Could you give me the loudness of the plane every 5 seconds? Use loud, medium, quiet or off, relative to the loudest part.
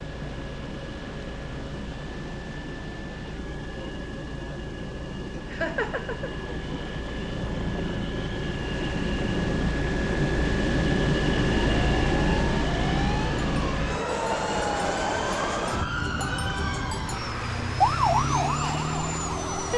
medium, medium, loud, medium.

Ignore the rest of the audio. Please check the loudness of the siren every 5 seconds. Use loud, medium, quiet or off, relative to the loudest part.
off, off, medium, loud.